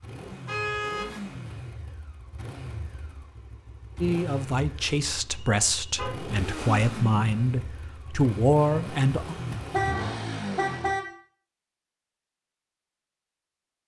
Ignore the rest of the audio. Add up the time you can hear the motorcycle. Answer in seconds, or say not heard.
11 s.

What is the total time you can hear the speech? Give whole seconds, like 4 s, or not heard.
5 s.